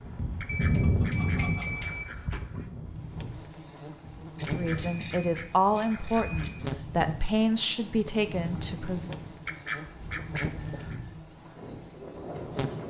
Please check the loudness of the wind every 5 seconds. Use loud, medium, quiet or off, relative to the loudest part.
loud, medium, medium.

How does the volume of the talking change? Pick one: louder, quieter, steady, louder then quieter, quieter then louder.
steady.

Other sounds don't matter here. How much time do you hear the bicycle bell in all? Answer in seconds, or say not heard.
5 s.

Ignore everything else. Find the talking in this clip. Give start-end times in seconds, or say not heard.
4.5-9.2.